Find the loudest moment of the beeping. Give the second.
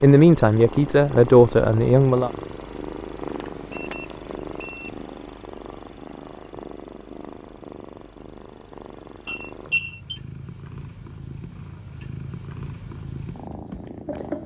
10 s.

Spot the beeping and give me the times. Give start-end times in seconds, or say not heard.
3.2-4.9, 9.2-10.2.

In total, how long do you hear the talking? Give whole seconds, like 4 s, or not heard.
2 s.